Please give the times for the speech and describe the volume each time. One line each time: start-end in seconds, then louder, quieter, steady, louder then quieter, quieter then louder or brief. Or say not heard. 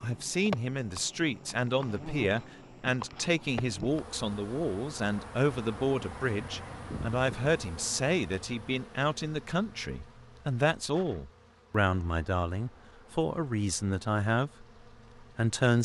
0.0-14.7 steady
15.3-15.8 brief.